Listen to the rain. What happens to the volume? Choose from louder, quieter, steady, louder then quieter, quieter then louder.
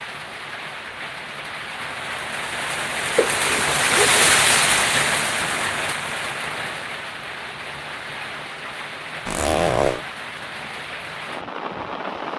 louder then quieter.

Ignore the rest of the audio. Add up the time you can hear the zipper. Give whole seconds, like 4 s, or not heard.
2 s.